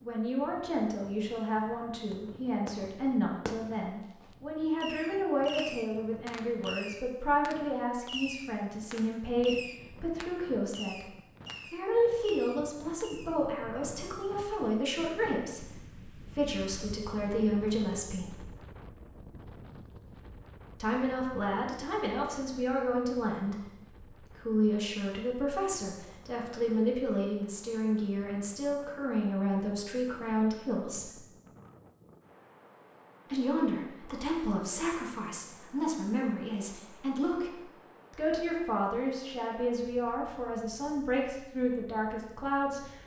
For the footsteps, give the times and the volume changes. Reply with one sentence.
The footsteps can't be heard in this clip.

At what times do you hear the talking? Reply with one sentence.
The talking can be heard from 0.0 to 11.1 s, from 11.7 to 18.4 s, from 20.8 to 31.2 s and from 33.2 to 43.0 s.